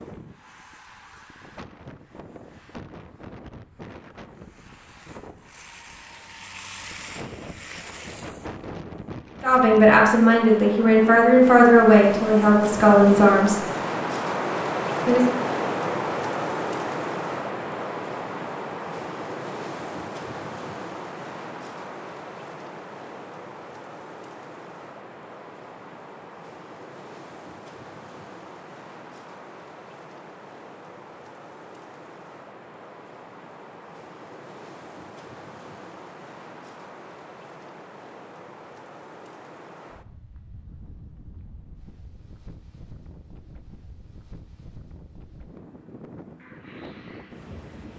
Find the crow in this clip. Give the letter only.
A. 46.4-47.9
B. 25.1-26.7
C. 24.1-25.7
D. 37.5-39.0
A.